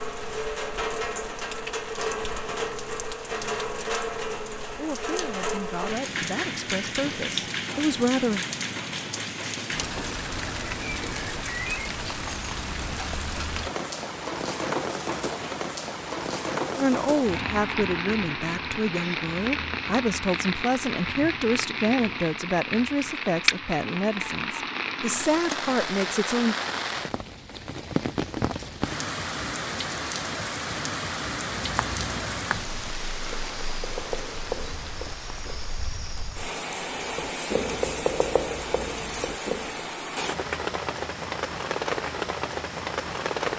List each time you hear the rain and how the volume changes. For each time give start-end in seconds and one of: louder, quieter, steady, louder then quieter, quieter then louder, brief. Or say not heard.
0.0-43.5 steady.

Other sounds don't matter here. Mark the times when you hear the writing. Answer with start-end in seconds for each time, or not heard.
31.4-35.7, 37.0-39.8.